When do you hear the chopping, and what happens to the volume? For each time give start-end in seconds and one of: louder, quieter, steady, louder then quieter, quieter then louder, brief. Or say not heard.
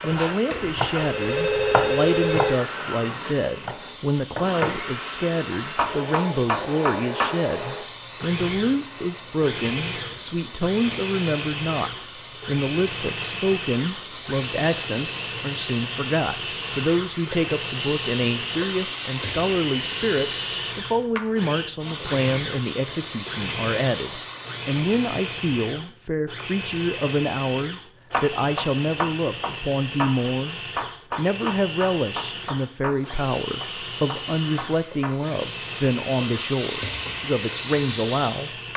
0.1-4.8 quieter then louder
5.5-7.3 brief
28.1-35.2 quieter.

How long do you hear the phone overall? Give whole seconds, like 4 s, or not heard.
2 s.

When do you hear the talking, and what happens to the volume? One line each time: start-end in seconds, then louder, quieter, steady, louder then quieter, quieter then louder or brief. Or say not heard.
0.0-38.5 steady.